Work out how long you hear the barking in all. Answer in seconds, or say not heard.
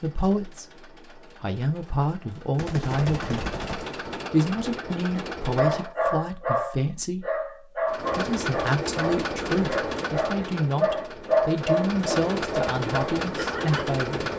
8 s.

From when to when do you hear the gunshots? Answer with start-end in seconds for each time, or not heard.
2.5-4.2.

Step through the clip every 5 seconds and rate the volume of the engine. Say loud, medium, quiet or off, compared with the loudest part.
medium, loud, loud.